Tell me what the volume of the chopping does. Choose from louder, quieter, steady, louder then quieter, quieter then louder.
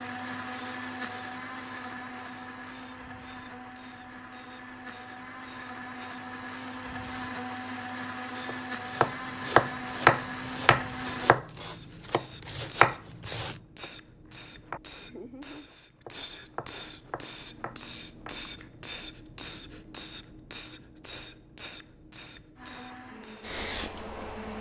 quieter.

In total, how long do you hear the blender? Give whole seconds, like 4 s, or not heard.
13 s.